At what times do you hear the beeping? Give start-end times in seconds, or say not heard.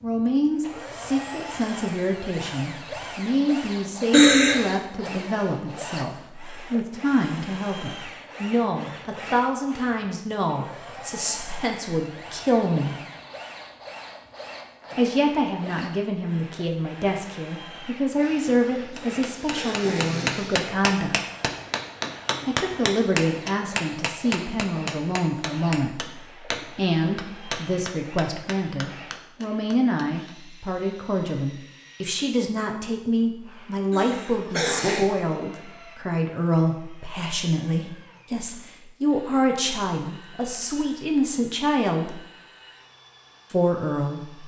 not heard.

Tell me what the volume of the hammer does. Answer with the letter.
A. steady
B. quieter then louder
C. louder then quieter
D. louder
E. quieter
E.